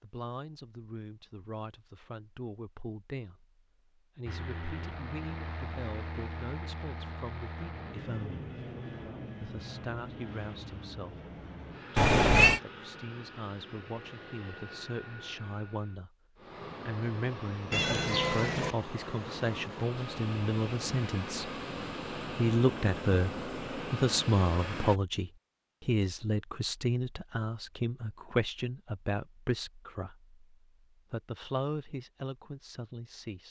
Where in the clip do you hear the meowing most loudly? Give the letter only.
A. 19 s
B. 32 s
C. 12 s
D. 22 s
C.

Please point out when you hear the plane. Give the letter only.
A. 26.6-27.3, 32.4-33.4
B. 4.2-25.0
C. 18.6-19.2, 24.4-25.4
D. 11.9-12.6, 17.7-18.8
B.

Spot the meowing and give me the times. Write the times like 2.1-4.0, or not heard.
11.9-12.6, 17.7-18.8.